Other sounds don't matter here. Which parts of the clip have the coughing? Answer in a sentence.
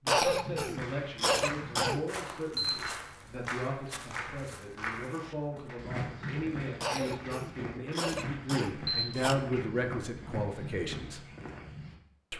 The coughing can be heard from 0.1 to 2.0 s and from 6.8 to 9.3 s.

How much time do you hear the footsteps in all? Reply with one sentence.
The footsteps can be heard for 12 seconds in total.